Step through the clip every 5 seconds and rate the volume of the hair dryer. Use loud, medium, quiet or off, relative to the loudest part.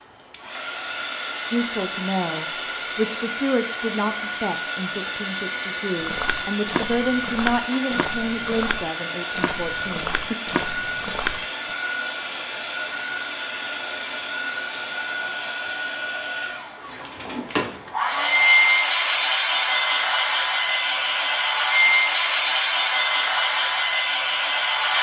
medium, medium, medium, loud, loud.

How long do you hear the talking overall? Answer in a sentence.
You can hear the talking for 9 seconds altogether.